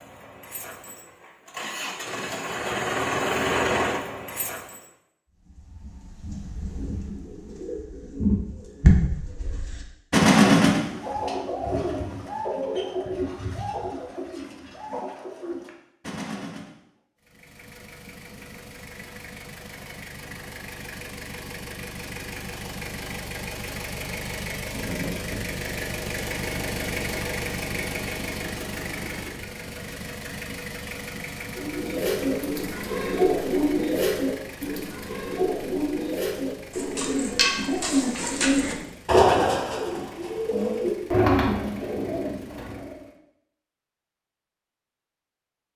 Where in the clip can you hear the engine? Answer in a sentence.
The engine can be heard from 0.0 to 4.8 s and from 17.2 to 43.1 s.